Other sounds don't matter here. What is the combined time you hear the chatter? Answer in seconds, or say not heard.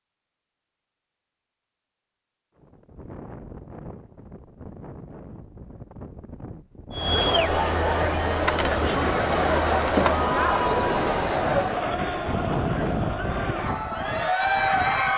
8 s.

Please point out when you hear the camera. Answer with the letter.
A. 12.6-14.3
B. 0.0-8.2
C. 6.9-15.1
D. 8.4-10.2
D.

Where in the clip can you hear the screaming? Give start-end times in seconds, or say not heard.
not heard.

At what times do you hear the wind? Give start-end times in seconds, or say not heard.
2.5-15.1.